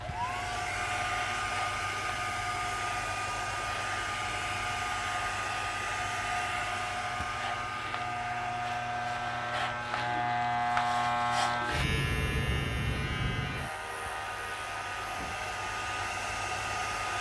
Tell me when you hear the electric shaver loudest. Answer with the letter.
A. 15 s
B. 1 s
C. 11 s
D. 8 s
C.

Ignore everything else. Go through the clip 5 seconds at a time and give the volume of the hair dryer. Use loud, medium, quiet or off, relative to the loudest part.
loud, loud, medium, loud.